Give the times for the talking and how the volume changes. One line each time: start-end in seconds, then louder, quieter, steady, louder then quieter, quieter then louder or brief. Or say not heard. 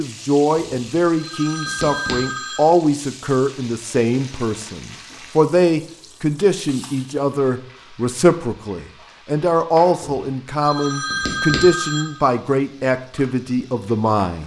0.0-14.4 steady.